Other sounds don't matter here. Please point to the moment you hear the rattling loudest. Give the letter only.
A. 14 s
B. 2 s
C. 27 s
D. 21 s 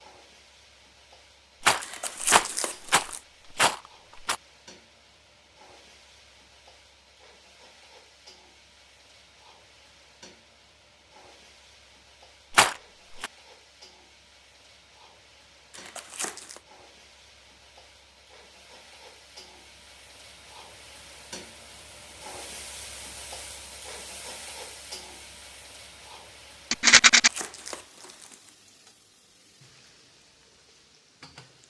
C.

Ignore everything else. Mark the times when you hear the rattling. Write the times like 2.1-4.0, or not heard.
1.6-4.3, 12.6-13.3, 26.7-27.3.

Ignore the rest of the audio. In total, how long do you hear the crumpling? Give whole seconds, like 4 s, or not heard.
4 s.